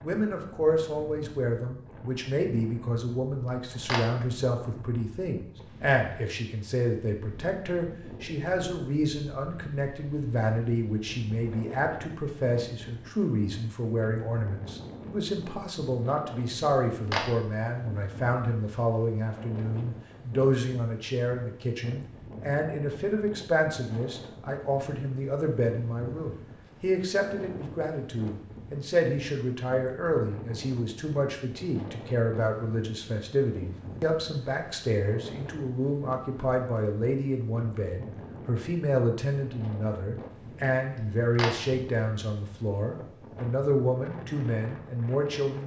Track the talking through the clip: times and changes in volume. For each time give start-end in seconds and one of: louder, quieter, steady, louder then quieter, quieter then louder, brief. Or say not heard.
0.0-45.6 steady.